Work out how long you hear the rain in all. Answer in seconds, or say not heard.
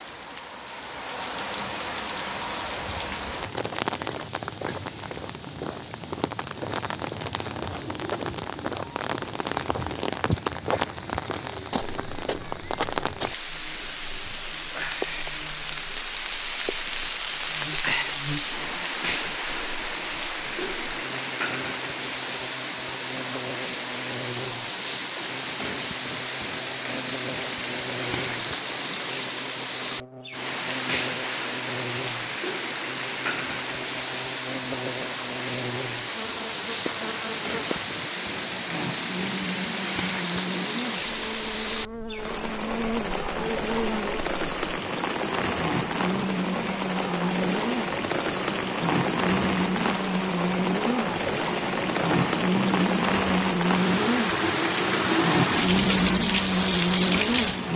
58 s.